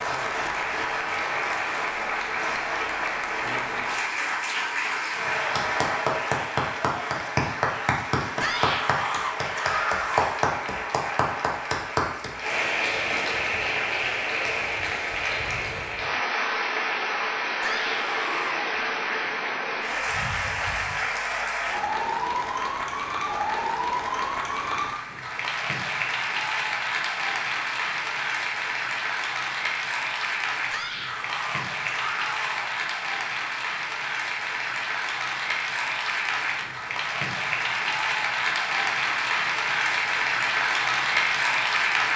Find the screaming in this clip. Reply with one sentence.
The screaming can be heard from 8.4 to 10.3 s, from 17.6 to 18.6 s and from 30.7 to 32.8 s.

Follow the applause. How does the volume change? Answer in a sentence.
The loudness of the applause stays about the same.